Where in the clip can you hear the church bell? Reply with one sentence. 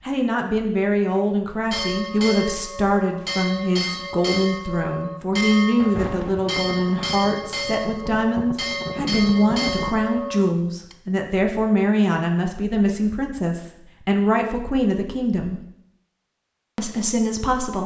The church bell can be heard from 1.7 to 10.9 s.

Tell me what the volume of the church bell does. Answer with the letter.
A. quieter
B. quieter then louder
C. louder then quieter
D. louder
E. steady
E.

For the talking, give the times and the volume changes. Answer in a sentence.
You can hear the talking from 0.0 to 15.6 s, at a steady volume; and briefly from 16.8 to 17.8 s.